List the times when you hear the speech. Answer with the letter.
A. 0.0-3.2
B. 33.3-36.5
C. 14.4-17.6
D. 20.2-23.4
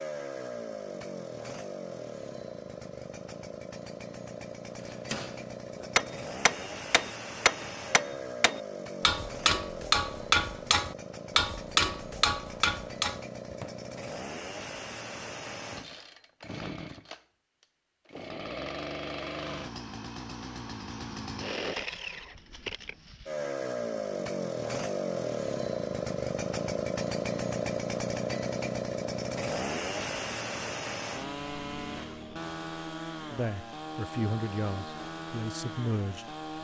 B.